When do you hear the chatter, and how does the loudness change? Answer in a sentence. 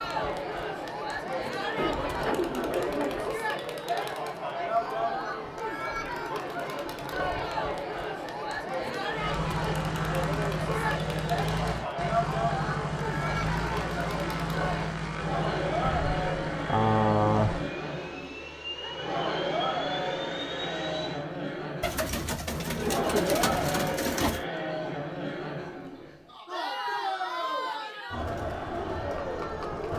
You can hear the chatter from 0.0 to 29.9 s, at a steady volume.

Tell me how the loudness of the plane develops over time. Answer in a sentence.
The volume of the plane goes down.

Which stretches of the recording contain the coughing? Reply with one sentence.
You can't hear the coughing here.